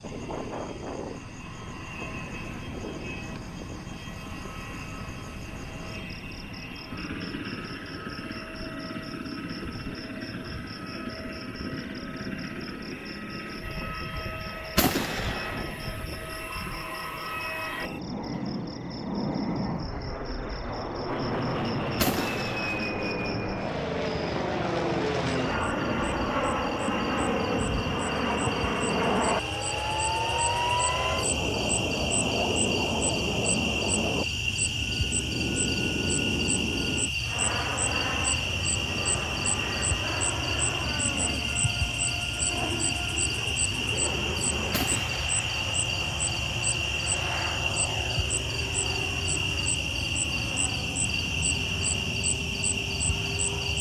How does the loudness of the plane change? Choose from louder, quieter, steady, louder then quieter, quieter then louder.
louder then quieter.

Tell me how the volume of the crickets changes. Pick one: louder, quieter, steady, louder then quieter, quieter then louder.
louder.